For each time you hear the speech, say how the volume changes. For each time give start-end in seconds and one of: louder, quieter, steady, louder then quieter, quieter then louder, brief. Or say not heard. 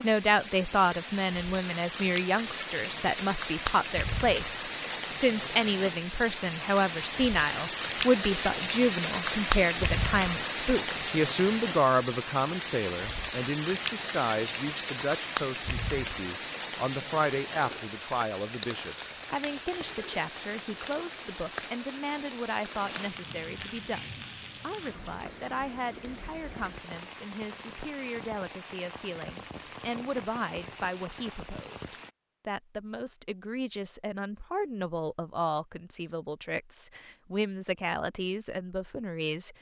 0.0-39.5 quieter.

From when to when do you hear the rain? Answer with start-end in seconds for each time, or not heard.
0.0-32.1.